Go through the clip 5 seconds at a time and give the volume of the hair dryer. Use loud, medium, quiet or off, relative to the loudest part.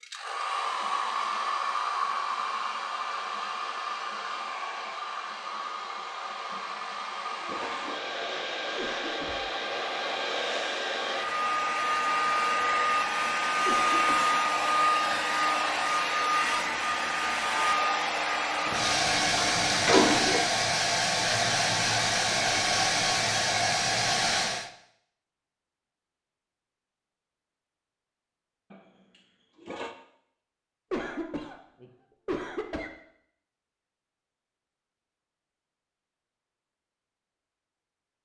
medium, medium, loud, loud, loud, off, off, off.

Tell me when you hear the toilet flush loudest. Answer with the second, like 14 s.
20 s.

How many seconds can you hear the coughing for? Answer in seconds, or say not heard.
4 s.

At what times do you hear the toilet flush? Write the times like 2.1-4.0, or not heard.
6.5-8.0, 18.6-20.4, 28.7-29.9.